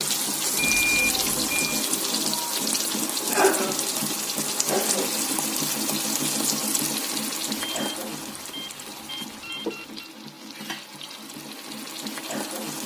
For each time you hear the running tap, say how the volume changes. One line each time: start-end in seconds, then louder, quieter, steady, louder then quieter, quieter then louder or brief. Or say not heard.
0.0-12.8 quieter.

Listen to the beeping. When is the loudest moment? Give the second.
1 s.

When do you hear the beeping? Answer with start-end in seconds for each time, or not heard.
0.6-1.8, 7.5-10.1.